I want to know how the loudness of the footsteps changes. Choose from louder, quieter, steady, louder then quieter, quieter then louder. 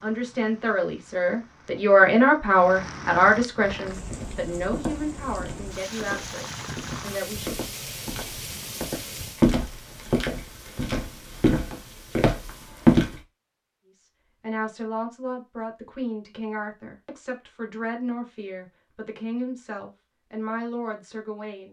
louder.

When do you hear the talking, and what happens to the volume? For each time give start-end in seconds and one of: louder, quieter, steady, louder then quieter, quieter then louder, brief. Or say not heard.
0.0-7.7 louder then quieter
13.9-21.6 steady.